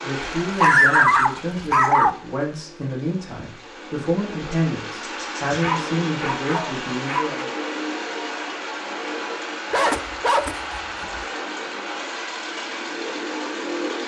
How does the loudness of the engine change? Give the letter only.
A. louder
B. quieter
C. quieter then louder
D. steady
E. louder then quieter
A.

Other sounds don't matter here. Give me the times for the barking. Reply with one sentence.
You can hear the barking from 0.4 to 2.1 s, from 5.5 to 7.4 s and from 9.7 to 11.2 s.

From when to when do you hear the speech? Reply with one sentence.
The speech can be heard from 0.0 to 7.5 s.